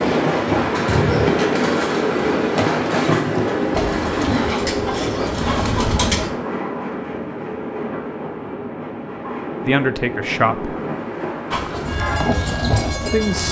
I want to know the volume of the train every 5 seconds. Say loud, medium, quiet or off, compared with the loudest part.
loud, medium, medium.